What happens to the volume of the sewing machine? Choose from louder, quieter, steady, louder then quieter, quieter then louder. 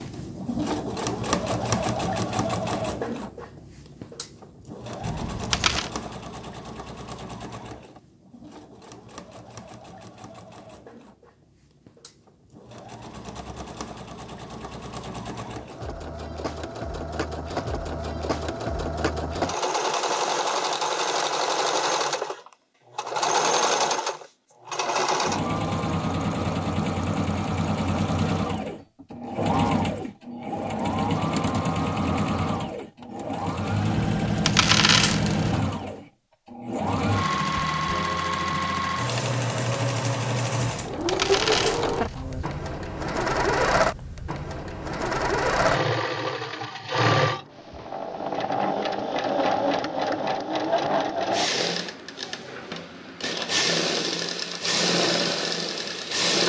louder.